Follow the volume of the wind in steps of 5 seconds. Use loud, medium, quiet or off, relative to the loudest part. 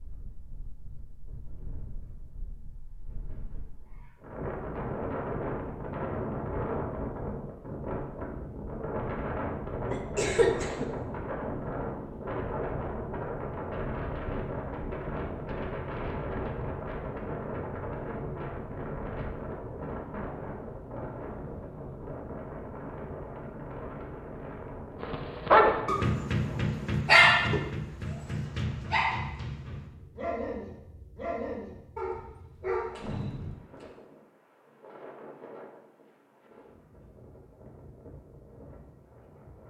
medium, loud, loud, loud, medium, medium, quiet, quiet.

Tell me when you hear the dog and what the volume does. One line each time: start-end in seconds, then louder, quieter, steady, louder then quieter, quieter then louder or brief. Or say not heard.
25.0-33.9 quieter.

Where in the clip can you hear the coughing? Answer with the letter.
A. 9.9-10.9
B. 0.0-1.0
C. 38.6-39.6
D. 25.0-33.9
A.